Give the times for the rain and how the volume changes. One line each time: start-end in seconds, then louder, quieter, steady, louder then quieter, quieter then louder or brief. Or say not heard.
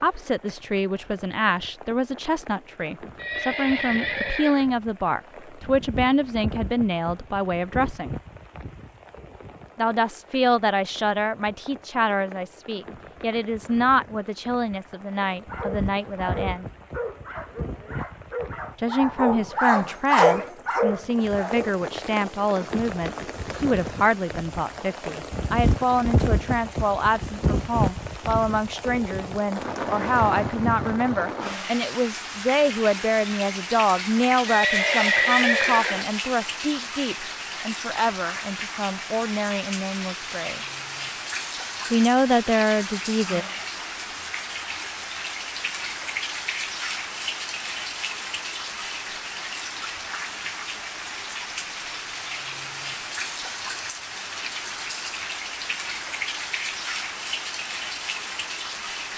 0.0-59.1 louder.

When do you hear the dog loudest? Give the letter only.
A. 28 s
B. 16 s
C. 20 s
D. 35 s
C.